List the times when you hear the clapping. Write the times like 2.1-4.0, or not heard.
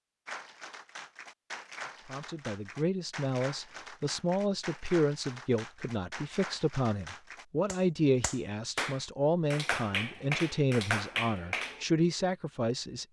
0.2-11.8.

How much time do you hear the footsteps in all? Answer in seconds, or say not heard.
not heard.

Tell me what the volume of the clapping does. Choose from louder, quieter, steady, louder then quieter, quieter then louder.
louder.